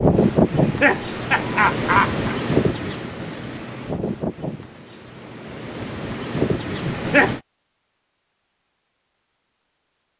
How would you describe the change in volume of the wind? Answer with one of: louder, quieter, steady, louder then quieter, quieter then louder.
quieter then louder.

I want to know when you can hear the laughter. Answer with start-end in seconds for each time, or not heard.
0.6-2.4, 6.8-7.3.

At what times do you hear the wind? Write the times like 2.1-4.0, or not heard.
0.0-7.4.